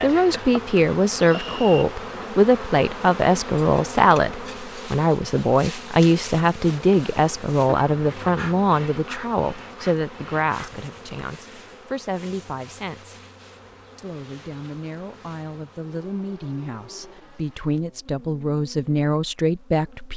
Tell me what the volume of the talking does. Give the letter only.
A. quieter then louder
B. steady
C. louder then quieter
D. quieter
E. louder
A.